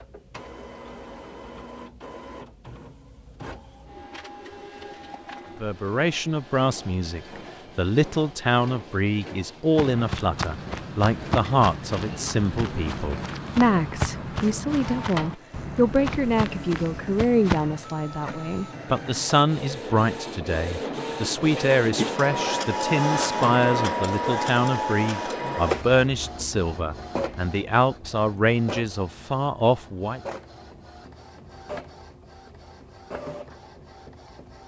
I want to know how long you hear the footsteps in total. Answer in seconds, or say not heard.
8 s.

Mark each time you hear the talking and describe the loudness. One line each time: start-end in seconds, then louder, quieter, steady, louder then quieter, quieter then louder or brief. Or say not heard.
5.6-30.2 steady.